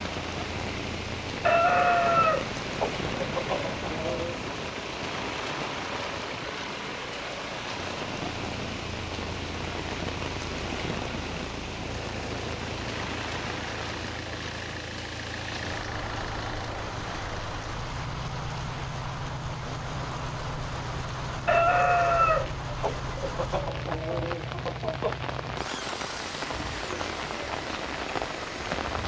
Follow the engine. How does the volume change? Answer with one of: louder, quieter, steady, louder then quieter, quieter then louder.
steady.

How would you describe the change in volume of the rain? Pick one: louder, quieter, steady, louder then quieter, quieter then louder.
steady.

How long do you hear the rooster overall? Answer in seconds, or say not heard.
7 s.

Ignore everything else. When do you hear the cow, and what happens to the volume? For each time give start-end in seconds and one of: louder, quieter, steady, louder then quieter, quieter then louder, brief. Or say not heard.
not heard.